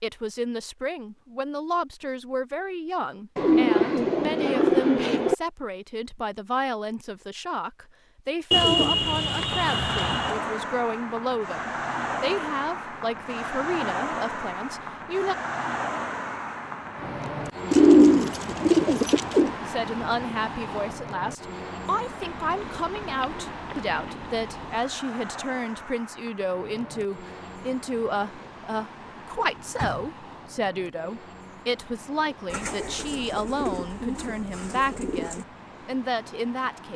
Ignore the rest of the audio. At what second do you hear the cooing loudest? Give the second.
18 s.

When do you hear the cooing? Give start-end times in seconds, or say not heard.
3.4-5.3, 8.5-10.4, 17.7-19.5, 22.2-24.9, 32.5-35.5.